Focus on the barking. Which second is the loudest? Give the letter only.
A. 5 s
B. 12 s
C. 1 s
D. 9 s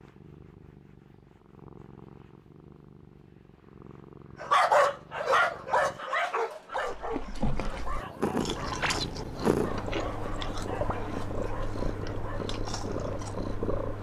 A.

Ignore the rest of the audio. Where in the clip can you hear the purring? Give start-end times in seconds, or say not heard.
0.0-13.9.